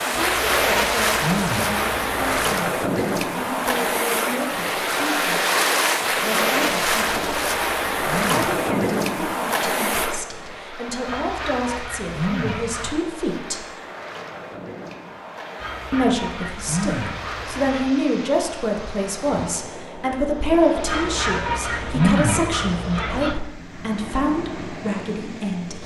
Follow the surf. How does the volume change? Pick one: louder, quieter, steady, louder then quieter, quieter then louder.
quieter.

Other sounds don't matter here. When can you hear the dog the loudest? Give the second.
22 s.